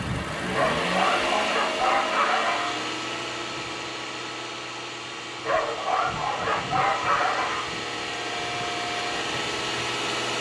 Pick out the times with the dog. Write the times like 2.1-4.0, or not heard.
0.5-2.7, 5.4-7.7.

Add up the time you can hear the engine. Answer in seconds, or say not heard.
10 s.